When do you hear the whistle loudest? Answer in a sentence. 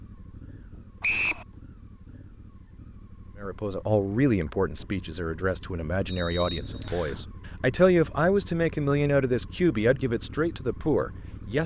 The volume of the whistle peaks at 1 second.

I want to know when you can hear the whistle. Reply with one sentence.
You can hear the whistle from 1.0 to 1.4 s and from 6.0 to 7.2 s.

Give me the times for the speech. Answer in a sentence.
The speech can be heard from 3.4 to 11.6 s.